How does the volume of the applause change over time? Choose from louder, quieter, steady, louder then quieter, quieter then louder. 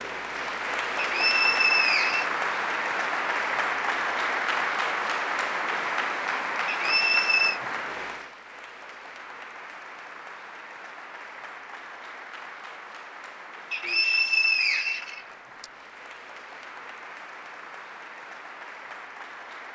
quieter.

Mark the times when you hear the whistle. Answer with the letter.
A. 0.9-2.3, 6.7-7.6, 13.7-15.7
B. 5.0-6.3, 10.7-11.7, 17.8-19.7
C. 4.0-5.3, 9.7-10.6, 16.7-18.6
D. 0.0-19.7
A.